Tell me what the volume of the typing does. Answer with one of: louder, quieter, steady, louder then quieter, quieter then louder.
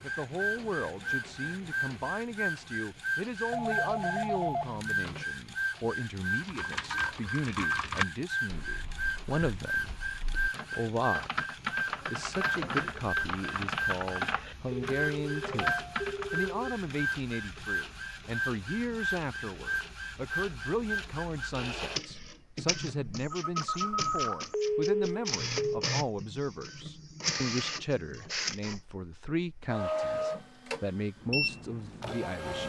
quieter then louder.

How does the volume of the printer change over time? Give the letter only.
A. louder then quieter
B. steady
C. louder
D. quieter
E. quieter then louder
B.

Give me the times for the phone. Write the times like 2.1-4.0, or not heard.
3.5-5.2, 14.7-16.8, 23.3-25.9.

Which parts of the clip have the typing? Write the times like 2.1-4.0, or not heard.
6.3-16.5.